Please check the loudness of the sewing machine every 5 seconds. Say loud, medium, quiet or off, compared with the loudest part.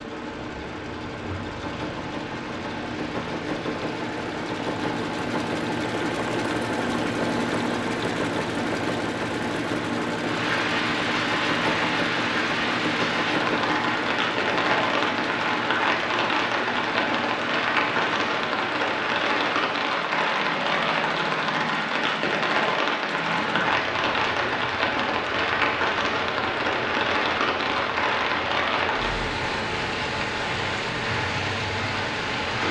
medium, loud, loud, medium, medium, medium, medium.